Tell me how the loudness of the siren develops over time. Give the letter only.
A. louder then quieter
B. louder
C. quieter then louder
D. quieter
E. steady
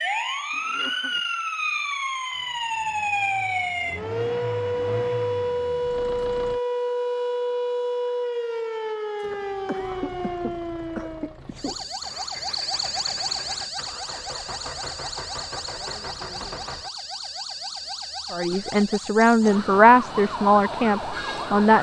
D.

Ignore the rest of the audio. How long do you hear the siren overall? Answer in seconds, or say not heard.
22 s.